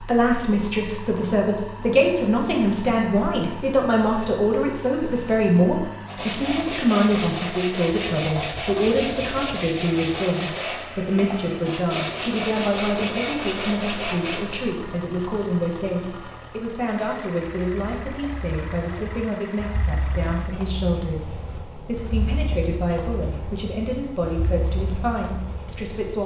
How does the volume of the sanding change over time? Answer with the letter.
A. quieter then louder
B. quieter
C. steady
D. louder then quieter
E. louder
C.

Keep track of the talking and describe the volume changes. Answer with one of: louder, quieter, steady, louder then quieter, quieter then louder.
quieter.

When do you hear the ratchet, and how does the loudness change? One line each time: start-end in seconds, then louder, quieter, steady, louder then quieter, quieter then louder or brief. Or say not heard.
not heard.